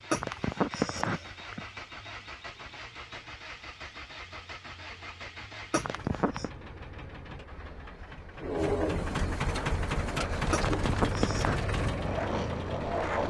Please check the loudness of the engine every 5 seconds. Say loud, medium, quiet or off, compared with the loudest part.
medium, loud, loud.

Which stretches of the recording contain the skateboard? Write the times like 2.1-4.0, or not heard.
9.6-13.2.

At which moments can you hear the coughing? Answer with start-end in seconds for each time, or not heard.
0.1-1.6, 5.7-6.5, 10.5-11.6.